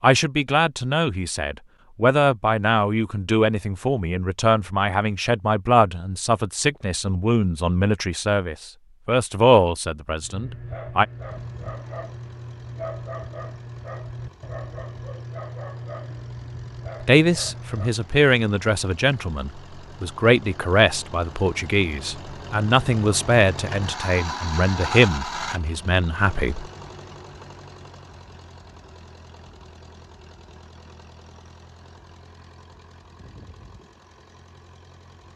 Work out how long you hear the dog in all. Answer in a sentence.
The dog can be heard for 8 seconds in total.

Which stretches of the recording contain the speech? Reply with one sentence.
The speech can be heard from 0.0 to 11.1 s and from 17.0 to 26.6 s.